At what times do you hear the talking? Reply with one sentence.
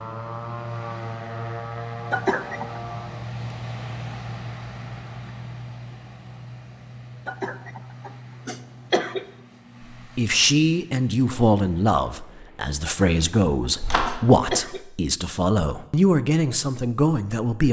You can hear the talking from 10.2 to 17.6 s.